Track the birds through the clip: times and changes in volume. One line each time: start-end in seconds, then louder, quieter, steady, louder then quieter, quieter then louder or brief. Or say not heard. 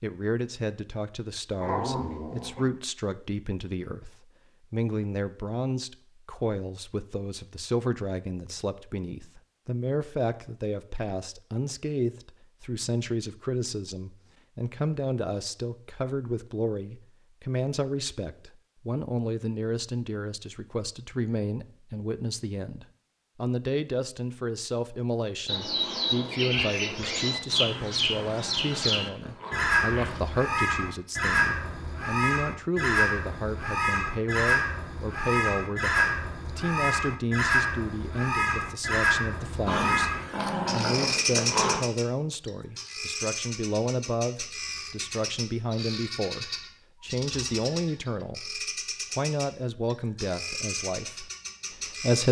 25.4-52.2 quieter.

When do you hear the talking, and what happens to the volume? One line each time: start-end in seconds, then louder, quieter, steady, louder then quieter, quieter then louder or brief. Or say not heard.
0.0-52.2 steady.